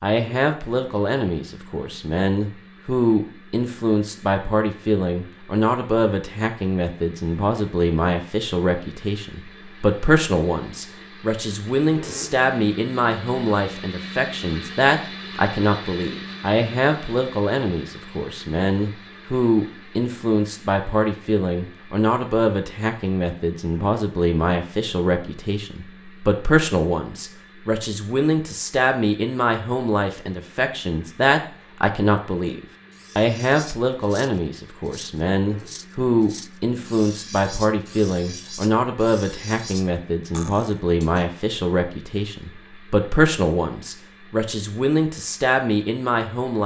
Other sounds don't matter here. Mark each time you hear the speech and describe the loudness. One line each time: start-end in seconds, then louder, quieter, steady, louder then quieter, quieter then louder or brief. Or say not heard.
0.0-46.6 steady.